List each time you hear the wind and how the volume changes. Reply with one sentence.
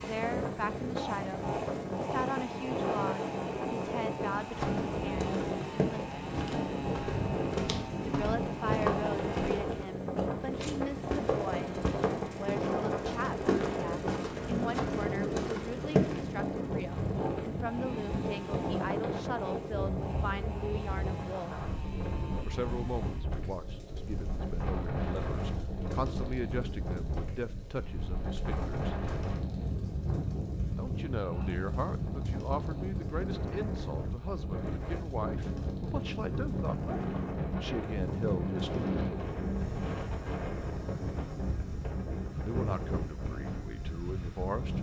The wind can be heard from 0.0 to 44.7 s, at a steady volume.